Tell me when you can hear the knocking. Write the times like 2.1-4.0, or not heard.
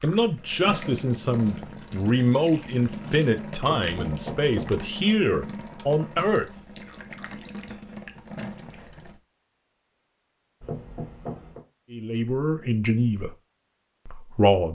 3.8-4.8, 10.6-11.7.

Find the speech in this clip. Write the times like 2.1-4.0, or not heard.
0.0-6.5, 11.9-13.3, 14.1-14.6.